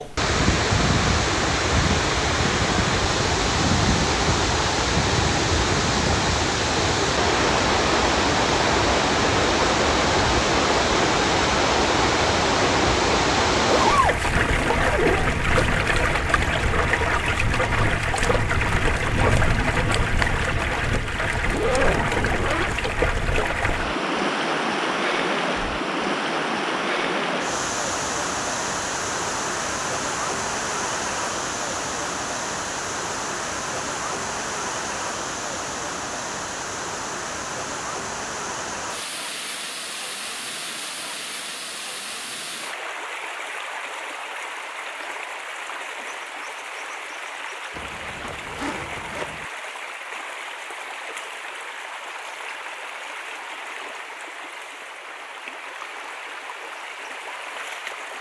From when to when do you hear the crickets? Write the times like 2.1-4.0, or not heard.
not heard.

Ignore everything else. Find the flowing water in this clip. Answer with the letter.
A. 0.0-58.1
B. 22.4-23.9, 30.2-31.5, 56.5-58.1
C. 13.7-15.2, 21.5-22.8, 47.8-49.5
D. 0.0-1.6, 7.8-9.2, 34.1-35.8
A.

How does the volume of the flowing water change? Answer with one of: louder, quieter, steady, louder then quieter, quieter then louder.
quieter.